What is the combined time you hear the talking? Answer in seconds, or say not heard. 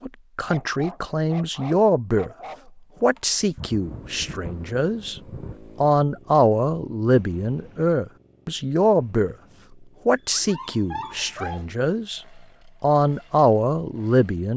12 s.